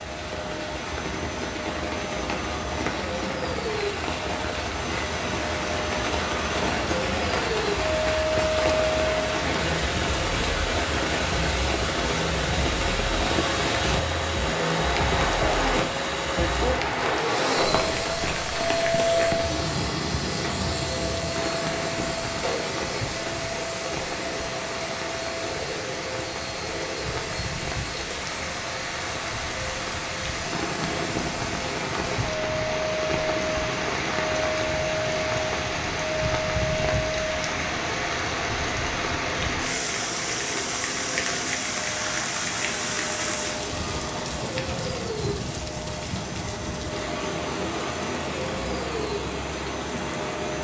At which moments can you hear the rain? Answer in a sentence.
You can hear the rain from 0.0 to 50.5 s.